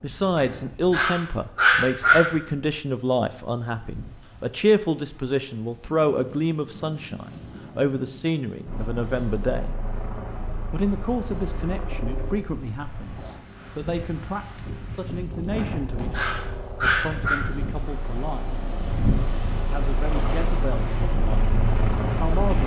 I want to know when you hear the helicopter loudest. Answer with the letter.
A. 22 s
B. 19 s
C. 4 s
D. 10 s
A.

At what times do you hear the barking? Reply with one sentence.
The barking can be heard from 0.3 to 2.3 s and from 15.6 to 17.4 s.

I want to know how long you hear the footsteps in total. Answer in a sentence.
The footsteps can't be heard in this clip.